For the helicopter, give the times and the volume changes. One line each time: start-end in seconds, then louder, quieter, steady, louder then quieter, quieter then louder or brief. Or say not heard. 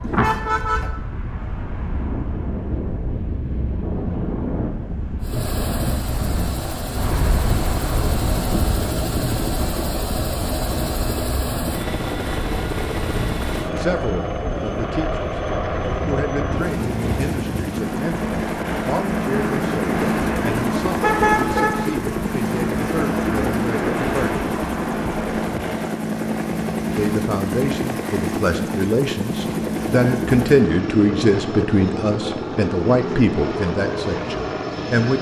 5.2-35.1 steady.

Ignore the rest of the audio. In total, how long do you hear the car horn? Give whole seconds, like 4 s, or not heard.
2 s.